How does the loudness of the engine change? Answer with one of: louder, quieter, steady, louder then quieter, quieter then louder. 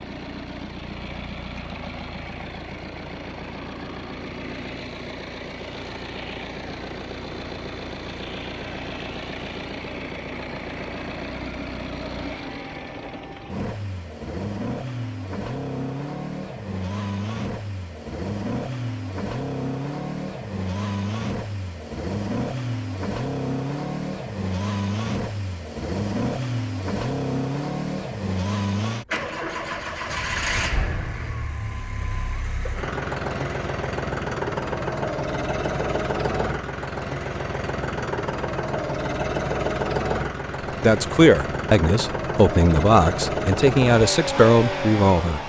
louder.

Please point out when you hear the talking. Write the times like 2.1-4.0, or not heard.
40.8-45.4.